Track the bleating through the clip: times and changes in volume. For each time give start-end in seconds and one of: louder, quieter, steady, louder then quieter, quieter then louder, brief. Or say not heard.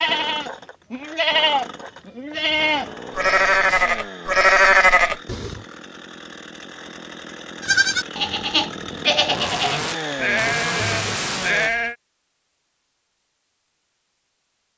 0.0-5.6 louder
7.6-11.9 steady.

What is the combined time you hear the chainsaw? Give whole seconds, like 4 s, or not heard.
12 s.